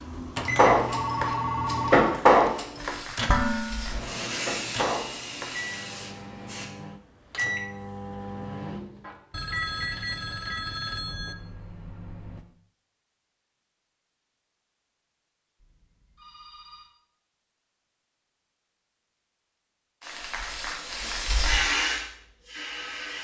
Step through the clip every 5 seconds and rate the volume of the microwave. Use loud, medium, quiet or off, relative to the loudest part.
loud, loud, medium, off, off.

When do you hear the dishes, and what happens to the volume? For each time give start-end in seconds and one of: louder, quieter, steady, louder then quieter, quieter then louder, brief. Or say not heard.
0.6-5.5 louder then quieter.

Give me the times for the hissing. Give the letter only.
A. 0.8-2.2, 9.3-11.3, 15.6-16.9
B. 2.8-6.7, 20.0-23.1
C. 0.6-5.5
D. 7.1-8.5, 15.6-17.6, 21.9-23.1
B.